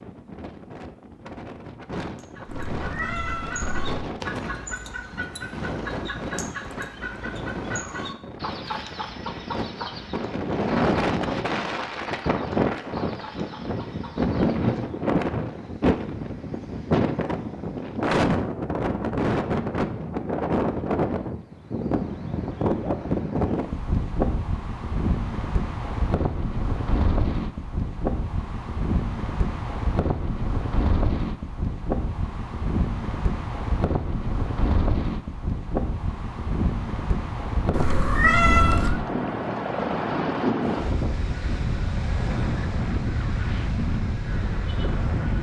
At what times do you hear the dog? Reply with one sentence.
You can't hear the dog here.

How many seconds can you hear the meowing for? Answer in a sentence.
You can hear the meowing for 3 seconds altogether.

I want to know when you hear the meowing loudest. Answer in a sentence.
The volume of the meowing peaks at 38 seconds.